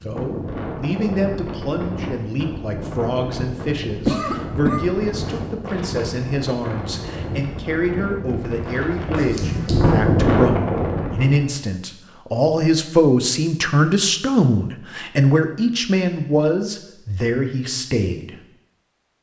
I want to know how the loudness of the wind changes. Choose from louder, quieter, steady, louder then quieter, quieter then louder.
louder.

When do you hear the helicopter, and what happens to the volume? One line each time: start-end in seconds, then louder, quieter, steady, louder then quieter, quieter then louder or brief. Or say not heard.
not heard.